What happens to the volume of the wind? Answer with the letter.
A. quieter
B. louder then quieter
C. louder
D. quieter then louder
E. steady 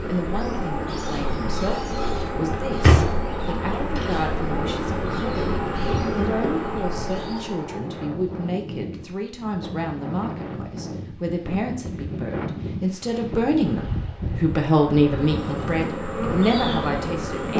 E.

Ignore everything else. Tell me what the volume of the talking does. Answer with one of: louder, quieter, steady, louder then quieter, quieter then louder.
louder.